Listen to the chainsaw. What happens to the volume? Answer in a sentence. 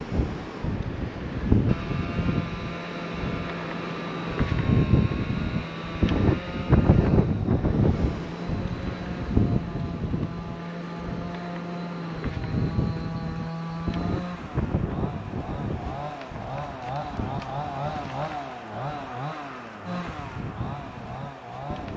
The volume of the chainsaw stays about the same.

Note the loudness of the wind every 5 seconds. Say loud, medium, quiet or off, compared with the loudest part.
loud, loud, medium, quiet, quiet.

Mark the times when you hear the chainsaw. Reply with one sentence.
The chainsaw can be heard from 0.2 to 21.9 s.